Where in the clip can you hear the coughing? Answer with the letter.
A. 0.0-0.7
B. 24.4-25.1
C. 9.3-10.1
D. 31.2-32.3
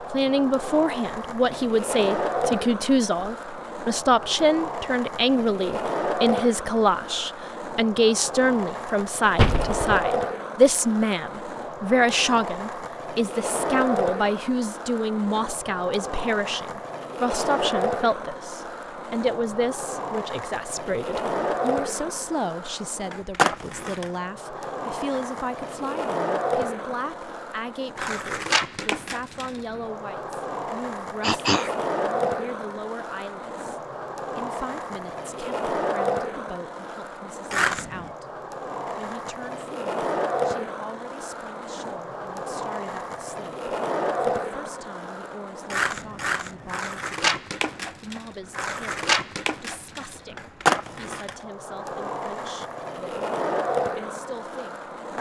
D.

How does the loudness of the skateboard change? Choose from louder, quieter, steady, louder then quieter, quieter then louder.
steady.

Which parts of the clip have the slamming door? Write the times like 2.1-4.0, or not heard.
9.3-10.1.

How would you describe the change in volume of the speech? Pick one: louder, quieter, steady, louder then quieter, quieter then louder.
quieter.